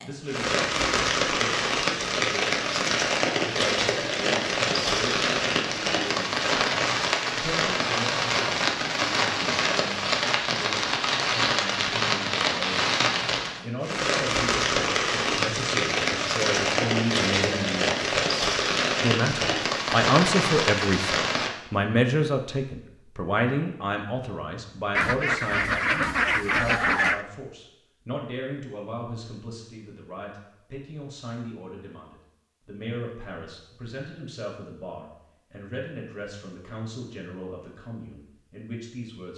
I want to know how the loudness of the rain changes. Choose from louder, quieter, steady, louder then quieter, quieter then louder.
steady.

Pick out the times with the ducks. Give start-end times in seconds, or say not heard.
24.9-27.2.